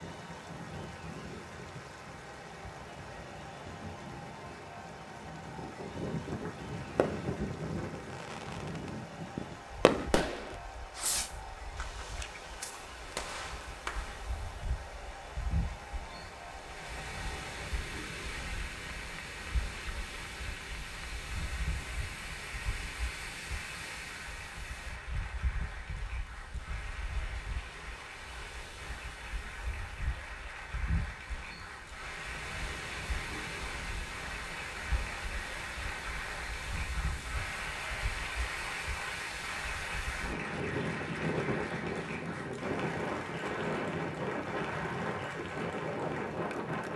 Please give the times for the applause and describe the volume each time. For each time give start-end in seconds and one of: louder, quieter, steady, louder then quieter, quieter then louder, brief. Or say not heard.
0.0-46.9 louder.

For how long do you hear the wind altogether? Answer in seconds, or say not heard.
47 s.